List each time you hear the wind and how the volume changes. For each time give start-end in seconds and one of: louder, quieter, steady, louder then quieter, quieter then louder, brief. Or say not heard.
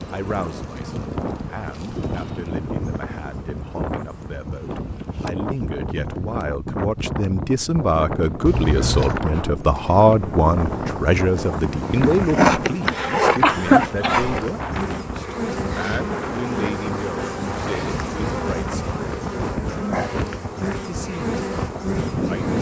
0.0-22.5 steady.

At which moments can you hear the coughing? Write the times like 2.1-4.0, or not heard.
12.1-14.4.